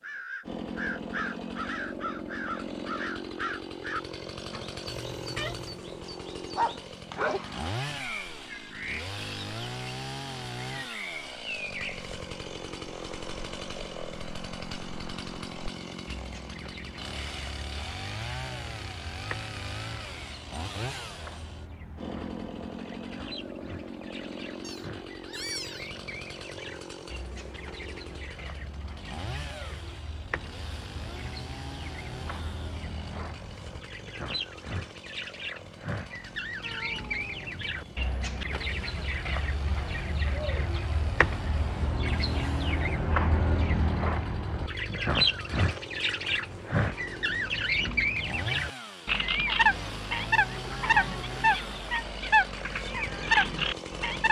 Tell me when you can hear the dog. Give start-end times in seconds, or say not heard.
5.8-7.5.